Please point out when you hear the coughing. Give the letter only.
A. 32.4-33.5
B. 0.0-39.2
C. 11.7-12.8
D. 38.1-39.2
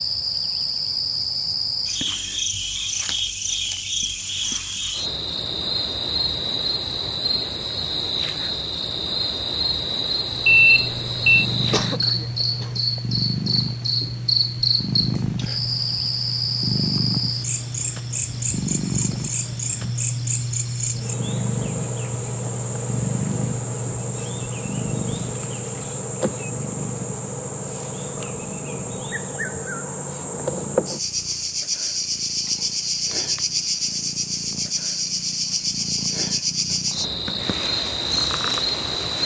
C.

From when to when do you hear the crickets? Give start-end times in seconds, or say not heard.
0.0-39.2.